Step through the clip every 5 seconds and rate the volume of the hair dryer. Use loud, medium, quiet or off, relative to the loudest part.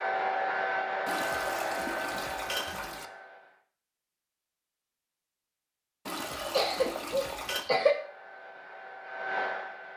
loud, medium.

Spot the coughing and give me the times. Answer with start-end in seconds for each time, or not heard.
6.3-8.0.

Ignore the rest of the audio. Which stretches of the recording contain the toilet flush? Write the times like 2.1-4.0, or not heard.
1.1-3.0, 6.0-7.7.